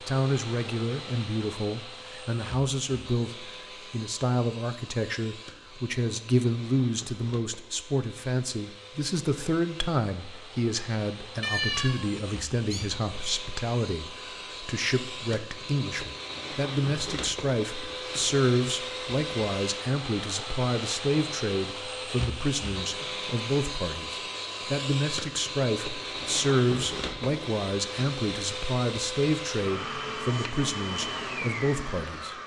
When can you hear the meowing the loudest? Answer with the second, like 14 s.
12 s.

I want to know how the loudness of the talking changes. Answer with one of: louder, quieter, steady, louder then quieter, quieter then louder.
steady.